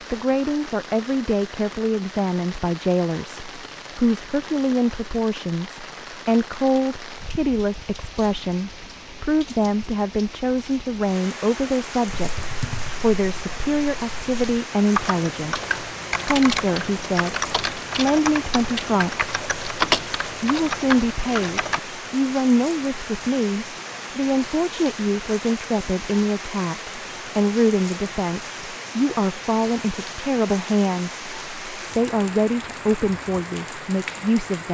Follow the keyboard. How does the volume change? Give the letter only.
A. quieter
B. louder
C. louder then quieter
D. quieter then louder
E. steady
B.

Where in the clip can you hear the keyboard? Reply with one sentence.
The keyboard can be heard from 12.1 to 21.8 s.